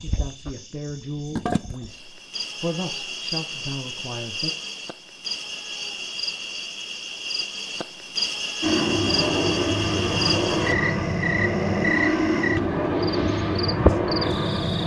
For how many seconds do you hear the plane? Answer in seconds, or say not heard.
6 s.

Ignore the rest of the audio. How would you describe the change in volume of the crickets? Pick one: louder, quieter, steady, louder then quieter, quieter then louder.
louder.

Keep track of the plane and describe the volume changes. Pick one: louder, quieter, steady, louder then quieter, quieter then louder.
steady.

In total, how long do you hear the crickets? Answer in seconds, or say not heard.
15 s.